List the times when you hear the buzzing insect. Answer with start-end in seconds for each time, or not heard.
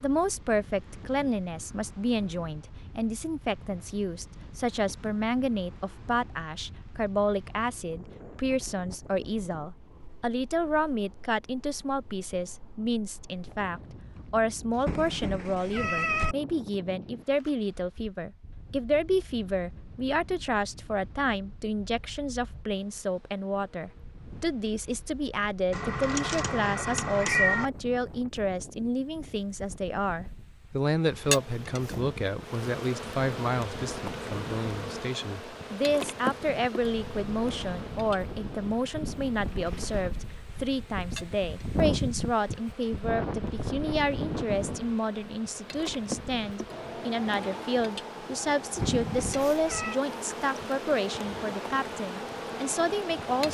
31.0-53.4.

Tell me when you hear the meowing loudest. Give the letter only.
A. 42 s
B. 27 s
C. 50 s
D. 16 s
B.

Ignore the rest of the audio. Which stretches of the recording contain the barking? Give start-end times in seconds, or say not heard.
not heard.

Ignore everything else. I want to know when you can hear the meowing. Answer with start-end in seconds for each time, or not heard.
14.8-16.4, 25.7-27.7, 48.8-50.0.